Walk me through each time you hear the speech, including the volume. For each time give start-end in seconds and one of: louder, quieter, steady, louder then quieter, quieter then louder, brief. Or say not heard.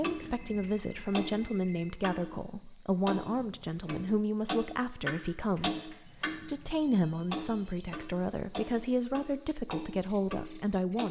0.0-11.0 steady.